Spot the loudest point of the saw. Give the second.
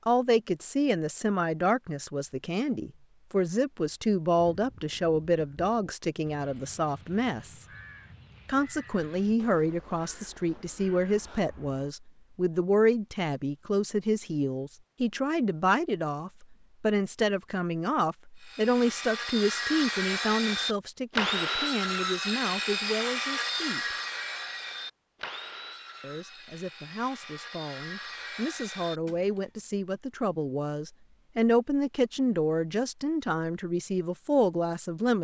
21 s.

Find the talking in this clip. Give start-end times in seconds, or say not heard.
0.1-7.7, 8.4-23.9, 26.0-35.1.